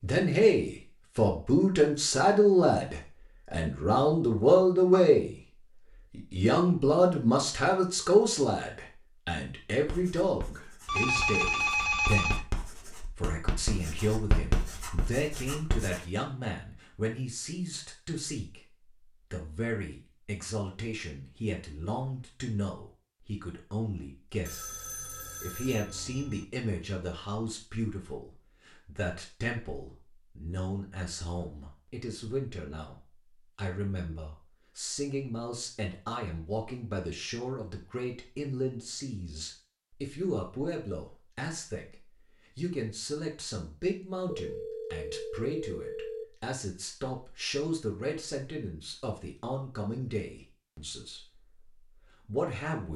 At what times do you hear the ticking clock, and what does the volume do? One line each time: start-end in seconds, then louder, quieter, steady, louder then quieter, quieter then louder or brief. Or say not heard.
not heard.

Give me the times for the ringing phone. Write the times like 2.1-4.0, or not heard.
10.8-12.4, 24.4-26.4, 44.2-46.2.